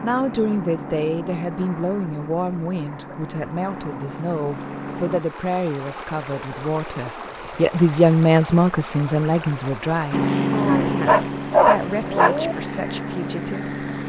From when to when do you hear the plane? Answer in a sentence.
The plane can be heard from 0.0 to 5.2 s and from 10.1 to 14.0 s.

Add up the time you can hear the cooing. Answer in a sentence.
You can't hear the cooing here.